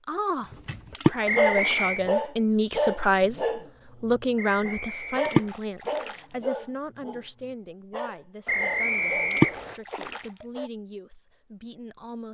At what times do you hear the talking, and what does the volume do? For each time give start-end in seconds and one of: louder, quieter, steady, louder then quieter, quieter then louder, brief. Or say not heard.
0.1-12.2 quieter.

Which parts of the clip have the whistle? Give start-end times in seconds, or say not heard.
1.2-2.0, 4.3-5.5, 8.4-9.8.